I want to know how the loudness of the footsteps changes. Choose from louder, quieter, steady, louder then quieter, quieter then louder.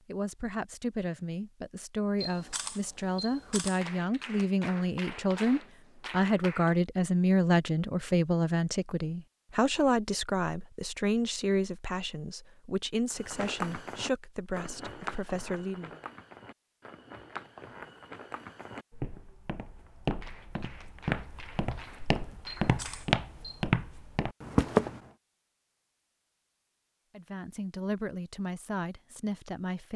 quieter then louder.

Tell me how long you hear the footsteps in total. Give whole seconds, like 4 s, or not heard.
12 s.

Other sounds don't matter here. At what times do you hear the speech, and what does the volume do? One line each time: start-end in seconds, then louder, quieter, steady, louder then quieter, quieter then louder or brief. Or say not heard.
0.1-16.0 louder then quieter
27.1-29.9 brief.